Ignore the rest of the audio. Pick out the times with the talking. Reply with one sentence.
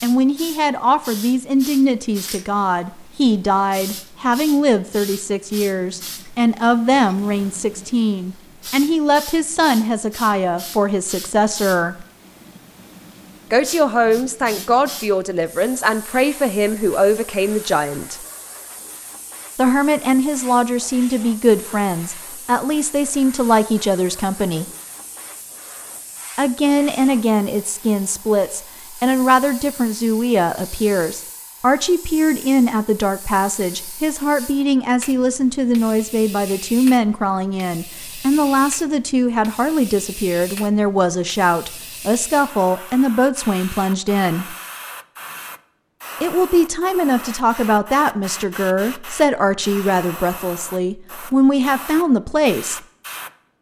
The talking can be heard from 0.0 to 12.1 s, from 13.5 to 18.2 s, from 19.6 to 24.6 s, from 26.4 to 44.5 s and from 46.2 to 52.8 s.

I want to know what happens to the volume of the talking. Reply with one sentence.
The volume of the talking stays about the same.